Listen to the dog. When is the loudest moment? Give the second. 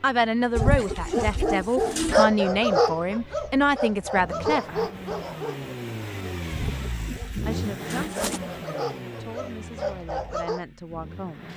2 s.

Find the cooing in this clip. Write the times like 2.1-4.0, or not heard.
0.6-2.2, 6.5-8.4.